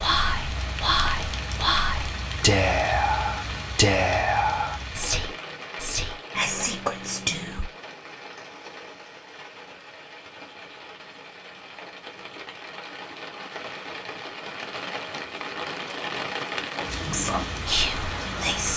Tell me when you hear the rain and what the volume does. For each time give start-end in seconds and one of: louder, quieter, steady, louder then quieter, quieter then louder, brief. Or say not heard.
0.0-18.7 quieter then louder.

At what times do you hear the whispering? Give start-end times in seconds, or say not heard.
0.0-7.7, 17.1-18.7.